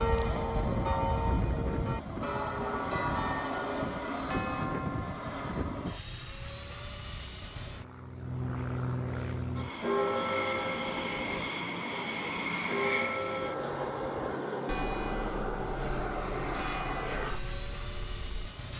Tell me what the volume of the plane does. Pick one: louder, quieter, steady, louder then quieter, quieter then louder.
steady.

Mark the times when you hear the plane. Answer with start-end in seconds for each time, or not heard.
0.0-18.7.